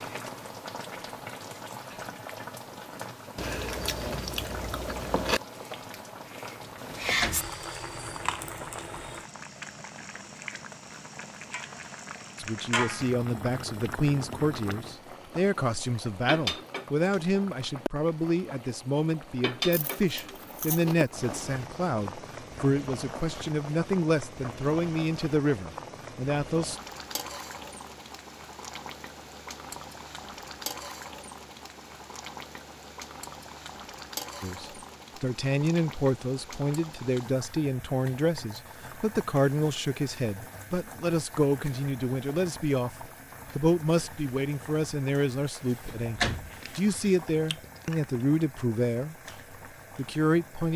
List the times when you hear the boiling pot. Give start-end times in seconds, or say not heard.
0.0-50.7.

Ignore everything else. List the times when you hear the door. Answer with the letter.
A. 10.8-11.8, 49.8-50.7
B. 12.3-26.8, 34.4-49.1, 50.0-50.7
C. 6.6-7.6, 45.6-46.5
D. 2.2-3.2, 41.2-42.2
C.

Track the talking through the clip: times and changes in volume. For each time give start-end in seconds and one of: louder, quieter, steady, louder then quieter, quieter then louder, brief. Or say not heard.
12.3-26.8 steady
34.4-49.1 steady
50.0-50.7 brief.